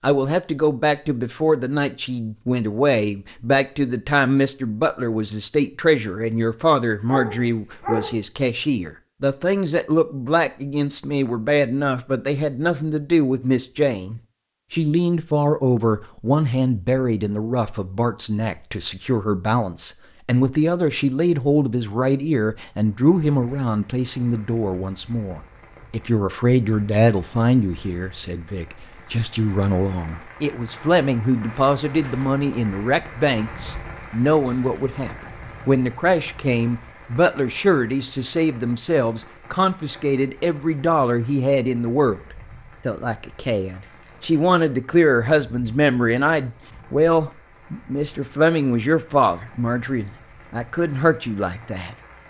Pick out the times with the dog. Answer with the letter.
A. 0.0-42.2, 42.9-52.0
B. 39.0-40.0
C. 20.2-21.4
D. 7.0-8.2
D.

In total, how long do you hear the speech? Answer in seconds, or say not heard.
51 s.